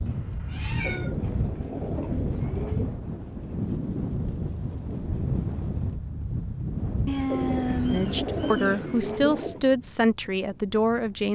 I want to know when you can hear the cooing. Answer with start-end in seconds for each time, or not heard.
0.8-3.0, 7.2-9.6.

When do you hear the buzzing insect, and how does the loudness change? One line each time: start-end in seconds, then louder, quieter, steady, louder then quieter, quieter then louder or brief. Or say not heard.
not heard.